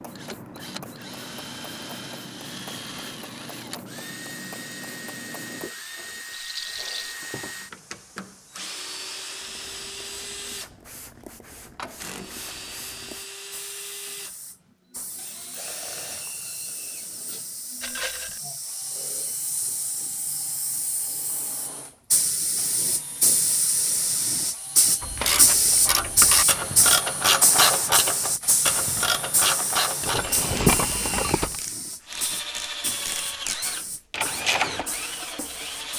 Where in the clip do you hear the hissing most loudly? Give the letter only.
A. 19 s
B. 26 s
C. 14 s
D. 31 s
B.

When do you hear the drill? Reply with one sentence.
The drill can be heard from 0.0 to 35.9 s.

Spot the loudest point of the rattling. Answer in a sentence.
The loudest moment of the rattling is at 31 seconds.